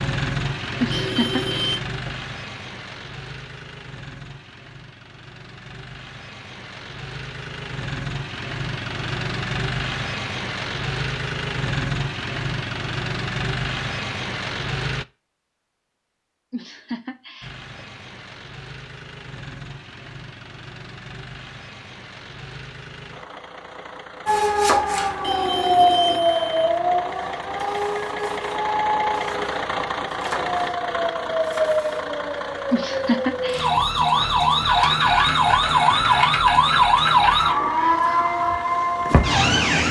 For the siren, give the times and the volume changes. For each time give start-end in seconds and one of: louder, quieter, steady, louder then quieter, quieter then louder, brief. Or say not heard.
24.2-39.8 quieter then louder.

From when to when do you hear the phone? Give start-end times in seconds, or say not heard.
0.9-1.8, 25.2-26.4.